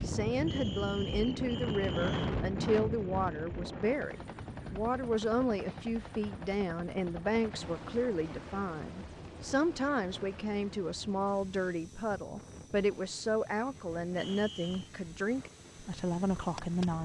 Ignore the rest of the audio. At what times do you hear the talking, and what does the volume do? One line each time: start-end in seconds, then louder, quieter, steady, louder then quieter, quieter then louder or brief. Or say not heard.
0.0-16.9 steady.